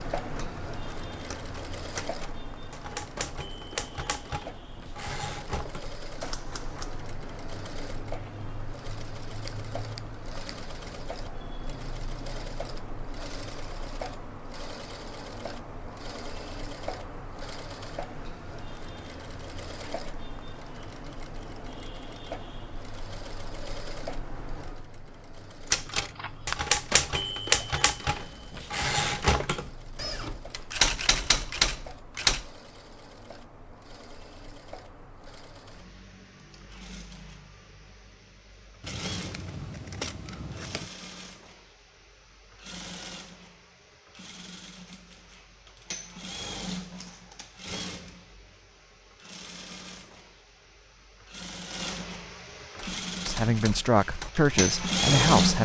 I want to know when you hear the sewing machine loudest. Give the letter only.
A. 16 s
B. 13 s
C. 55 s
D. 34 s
C.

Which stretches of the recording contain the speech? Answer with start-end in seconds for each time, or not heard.
53.2-55.5.